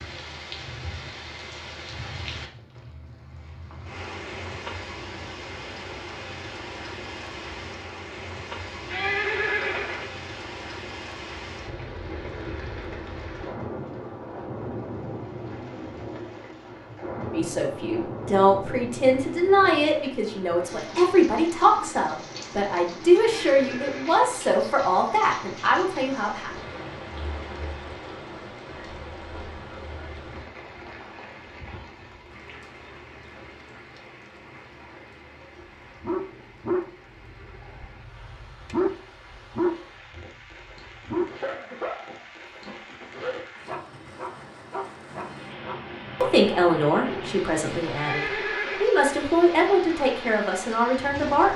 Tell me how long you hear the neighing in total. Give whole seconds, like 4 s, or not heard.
3 s.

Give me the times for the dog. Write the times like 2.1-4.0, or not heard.
35.5-47.4.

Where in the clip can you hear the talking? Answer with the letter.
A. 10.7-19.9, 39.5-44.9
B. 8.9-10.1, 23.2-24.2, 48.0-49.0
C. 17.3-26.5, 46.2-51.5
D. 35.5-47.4
C.